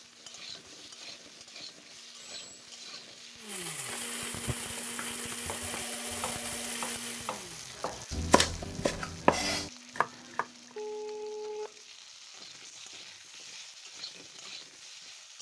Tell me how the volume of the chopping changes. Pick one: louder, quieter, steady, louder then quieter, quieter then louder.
louder.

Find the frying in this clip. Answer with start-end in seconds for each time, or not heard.
0.0-15.3.